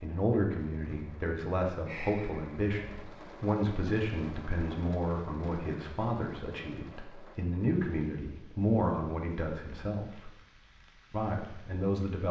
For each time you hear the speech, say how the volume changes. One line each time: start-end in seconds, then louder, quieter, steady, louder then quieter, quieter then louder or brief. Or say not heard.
0.0-10.3 steady
11.1-12.2 brief.